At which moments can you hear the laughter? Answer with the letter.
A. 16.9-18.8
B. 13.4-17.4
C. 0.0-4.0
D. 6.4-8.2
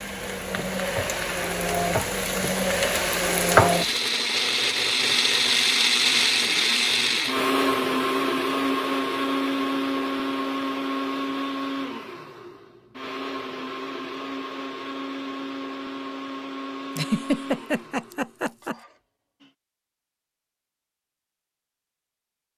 A.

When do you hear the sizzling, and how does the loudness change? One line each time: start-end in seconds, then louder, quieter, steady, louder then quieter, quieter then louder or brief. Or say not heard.
0.0-4.0 louder.